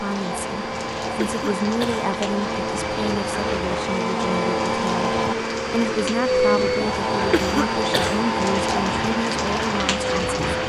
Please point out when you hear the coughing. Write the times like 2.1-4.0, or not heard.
1.2-2.1, 7.3-8.2.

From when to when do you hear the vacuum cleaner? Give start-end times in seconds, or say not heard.
0.0-10.6.